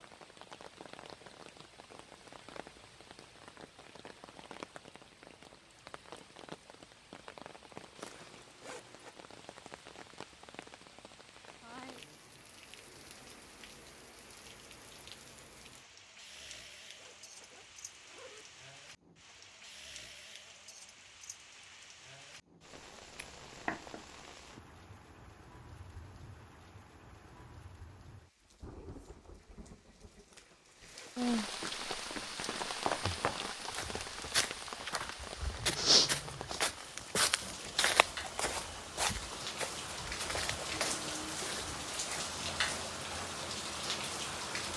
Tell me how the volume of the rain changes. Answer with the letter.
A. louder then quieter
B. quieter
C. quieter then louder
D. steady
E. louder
E.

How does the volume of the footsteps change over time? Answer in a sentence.
The loudness of the footsteps goes up, then down.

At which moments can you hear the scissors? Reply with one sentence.
You can hear the scissors from 23.2 to 24.1 s.